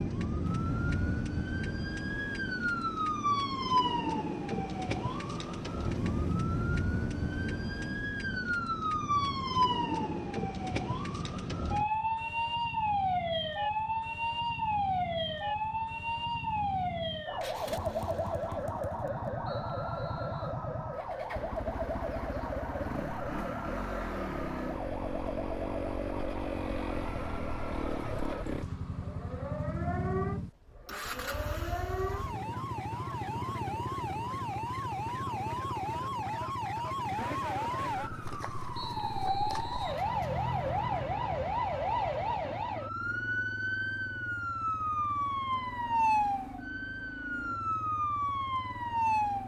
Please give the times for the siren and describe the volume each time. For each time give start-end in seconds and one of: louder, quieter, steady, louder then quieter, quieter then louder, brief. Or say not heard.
0.0-49.4 quieter then louder.